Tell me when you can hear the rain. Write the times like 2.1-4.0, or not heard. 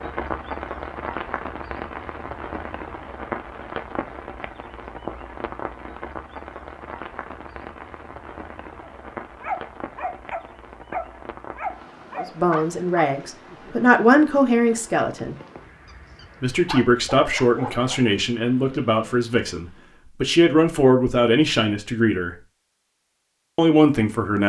0.0-20.1.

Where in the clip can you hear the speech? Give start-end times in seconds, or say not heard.
12.2-15.3, 16.4-22.4, 23.6-24.4.